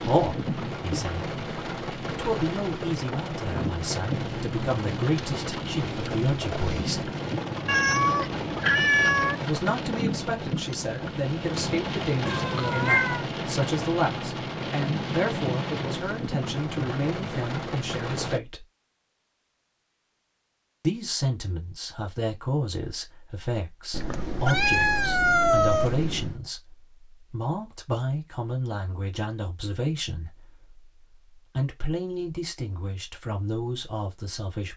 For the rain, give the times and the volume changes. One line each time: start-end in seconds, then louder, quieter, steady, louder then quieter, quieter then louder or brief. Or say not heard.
0.0-18.4 steady.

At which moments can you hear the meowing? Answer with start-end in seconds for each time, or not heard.
7.7-9.3, 12.2-13.2, 23.9-26.4.